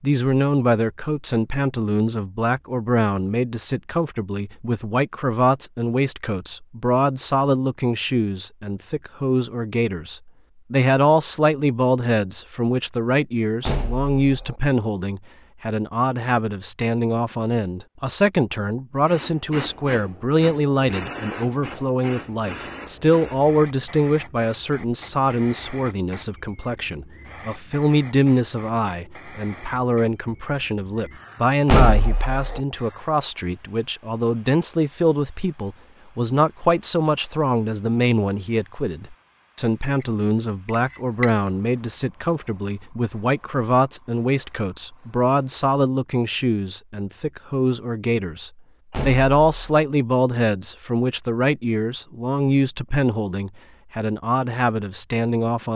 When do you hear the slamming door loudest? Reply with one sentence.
The loudest moment of the slamming door is at 32 seconds.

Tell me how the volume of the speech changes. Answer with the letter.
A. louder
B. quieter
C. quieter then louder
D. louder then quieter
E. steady
E.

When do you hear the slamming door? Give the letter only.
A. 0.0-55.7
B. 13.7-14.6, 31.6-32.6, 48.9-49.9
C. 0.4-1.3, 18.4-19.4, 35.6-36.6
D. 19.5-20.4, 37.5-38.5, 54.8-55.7
B.